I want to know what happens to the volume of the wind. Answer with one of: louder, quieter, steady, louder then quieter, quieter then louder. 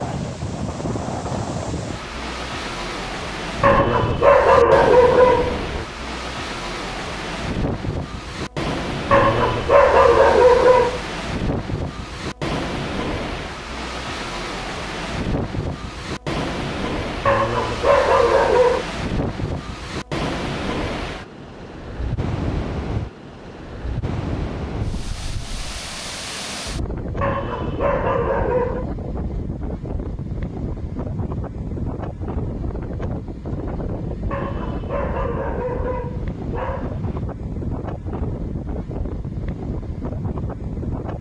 steady.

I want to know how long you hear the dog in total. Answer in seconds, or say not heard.
10 s.